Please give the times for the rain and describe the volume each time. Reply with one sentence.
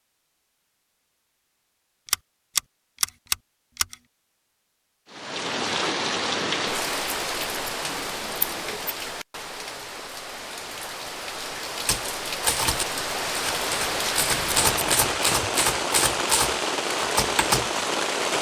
The rain can be heard from 5.1 to 18.3 s, getting quieter then louder.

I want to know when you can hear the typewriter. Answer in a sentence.
You can hear the typewriter from 11.8 to 17.8 s.